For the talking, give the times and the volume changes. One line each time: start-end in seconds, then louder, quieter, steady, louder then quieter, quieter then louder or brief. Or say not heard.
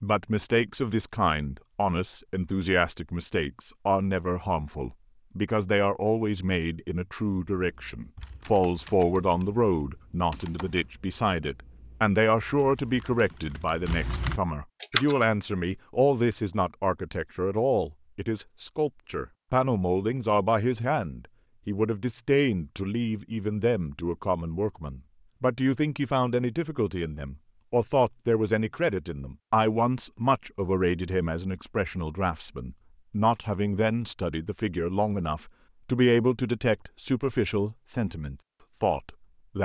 0.0-39.6 steady.